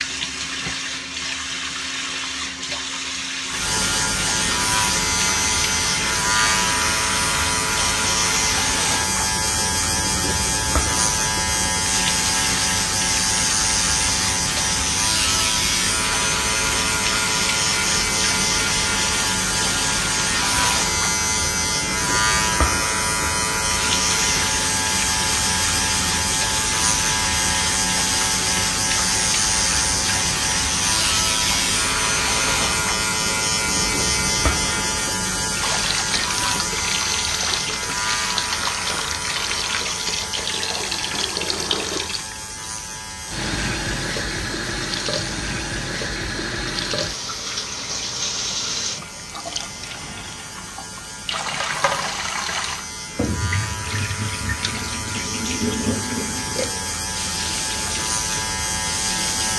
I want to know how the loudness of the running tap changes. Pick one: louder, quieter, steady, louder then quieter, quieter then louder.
steady.